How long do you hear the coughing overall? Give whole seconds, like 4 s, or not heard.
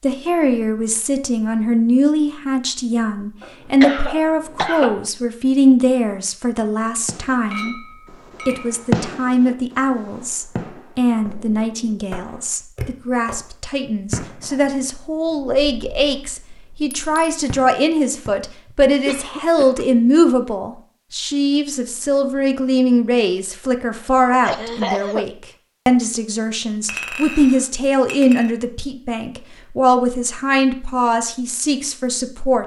4 s.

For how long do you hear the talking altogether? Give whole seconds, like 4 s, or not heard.
32 s.